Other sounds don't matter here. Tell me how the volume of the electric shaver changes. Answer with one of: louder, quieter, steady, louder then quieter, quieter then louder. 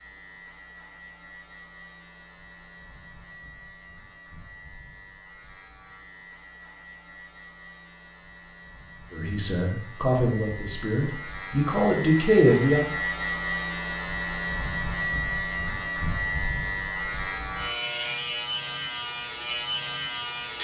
louder.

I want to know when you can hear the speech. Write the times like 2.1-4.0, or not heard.
9.1-12.8.